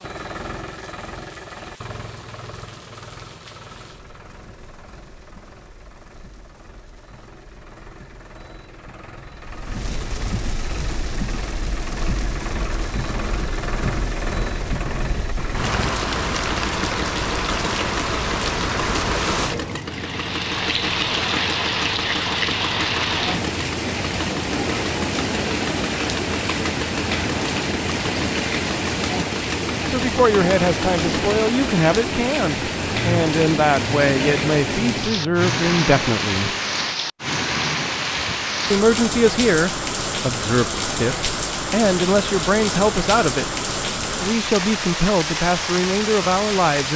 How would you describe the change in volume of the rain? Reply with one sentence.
The volume of the rain goes up.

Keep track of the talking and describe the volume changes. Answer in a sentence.
The loudness of the talking stays about the same.